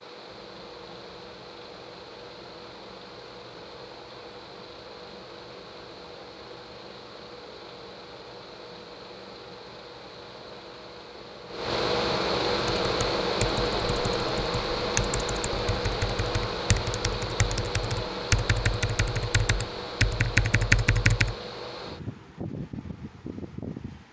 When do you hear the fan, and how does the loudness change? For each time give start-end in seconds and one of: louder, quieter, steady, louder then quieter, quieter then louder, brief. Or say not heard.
0.0-24.0 louder then quieter.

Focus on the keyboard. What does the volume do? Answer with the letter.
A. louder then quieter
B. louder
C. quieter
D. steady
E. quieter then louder
B.